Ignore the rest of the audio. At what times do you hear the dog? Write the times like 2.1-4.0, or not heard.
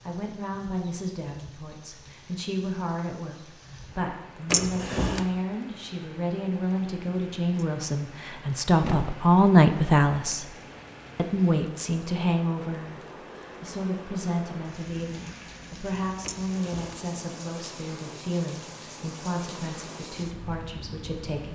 not heard.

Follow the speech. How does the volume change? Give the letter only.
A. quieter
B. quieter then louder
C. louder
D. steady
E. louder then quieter
E.